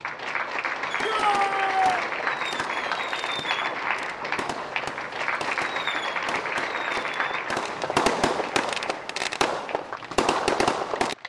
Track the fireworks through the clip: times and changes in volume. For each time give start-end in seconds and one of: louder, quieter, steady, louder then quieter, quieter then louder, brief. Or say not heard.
0.9-11.2 louder.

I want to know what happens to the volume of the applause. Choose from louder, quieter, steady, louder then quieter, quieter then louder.
quieter.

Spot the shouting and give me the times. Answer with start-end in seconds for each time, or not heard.
1.0-2.0.